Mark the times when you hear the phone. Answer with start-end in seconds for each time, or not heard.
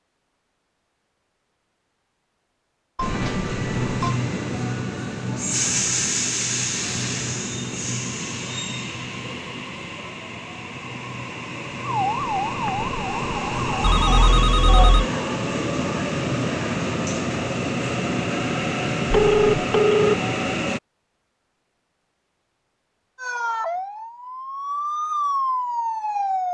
3.0-4.2, 13.8-15.1, 19.1-20.2.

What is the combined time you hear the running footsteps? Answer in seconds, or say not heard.
not heard.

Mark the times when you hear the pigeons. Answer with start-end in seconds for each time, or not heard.
not heard.